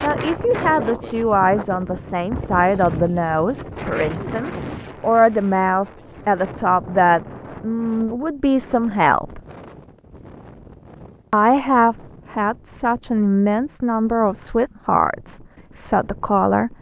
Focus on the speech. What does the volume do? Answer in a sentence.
The loudness of the speech stays about the same.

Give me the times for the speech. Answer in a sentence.
You can hear the speech from 0.0 to 9.4 s and from 11.3 to 16.7 s.